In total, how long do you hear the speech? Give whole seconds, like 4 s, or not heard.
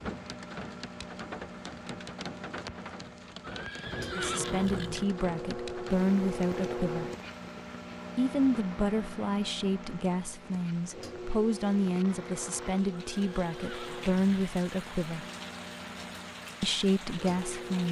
11 s.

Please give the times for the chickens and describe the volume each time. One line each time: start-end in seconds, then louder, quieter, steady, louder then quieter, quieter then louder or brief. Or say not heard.
not heard.